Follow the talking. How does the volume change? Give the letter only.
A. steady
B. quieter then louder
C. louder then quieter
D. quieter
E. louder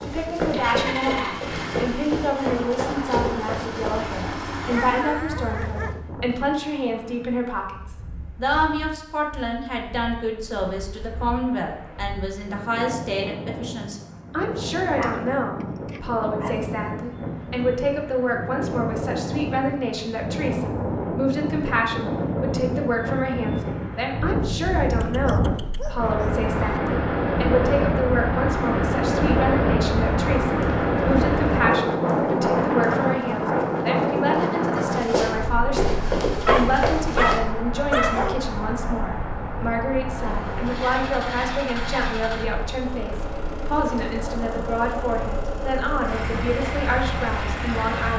A.